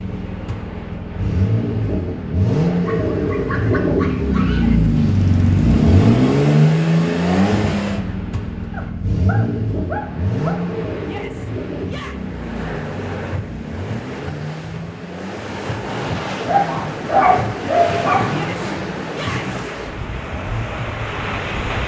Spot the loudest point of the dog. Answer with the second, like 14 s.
17 s.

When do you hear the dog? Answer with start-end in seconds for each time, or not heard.
2.9-4.8, 8.7-10.7, 16.4-18.3.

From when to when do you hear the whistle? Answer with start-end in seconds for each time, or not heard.
not heard.